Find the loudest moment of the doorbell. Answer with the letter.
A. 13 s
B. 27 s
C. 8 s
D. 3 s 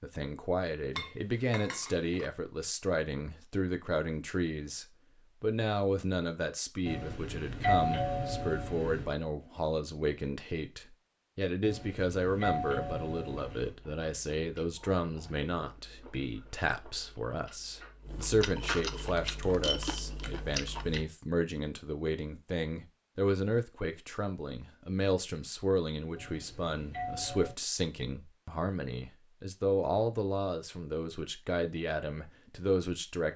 C.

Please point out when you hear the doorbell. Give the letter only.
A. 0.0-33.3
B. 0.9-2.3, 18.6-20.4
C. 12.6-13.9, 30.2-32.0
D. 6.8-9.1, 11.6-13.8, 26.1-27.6
D.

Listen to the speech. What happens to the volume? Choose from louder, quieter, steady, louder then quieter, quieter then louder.
steady.